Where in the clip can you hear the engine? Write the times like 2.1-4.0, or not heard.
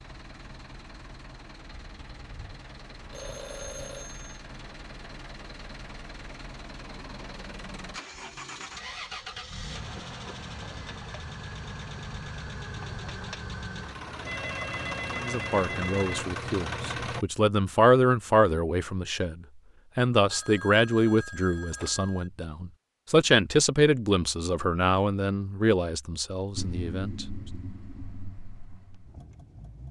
0.0-17.2, 26.6-29.8.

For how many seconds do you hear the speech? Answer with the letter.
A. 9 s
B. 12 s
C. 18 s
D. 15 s
B.